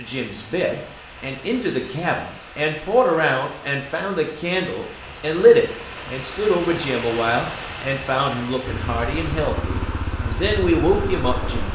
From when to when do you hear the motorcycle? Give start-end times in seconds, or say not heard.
8.7-11.7.